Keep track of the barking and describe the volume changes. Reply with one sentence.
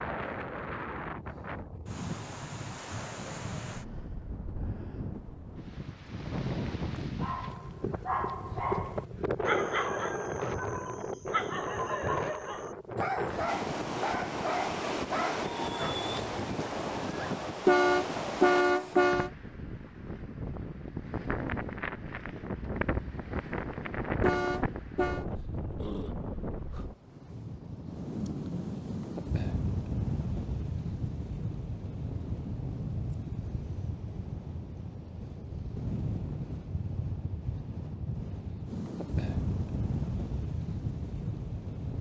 The volume of the barking stays about the same.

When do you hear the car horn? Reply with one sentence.
You can hear the car horn from 17.6 to 19.3 s and from 24.2 to 25.2 s.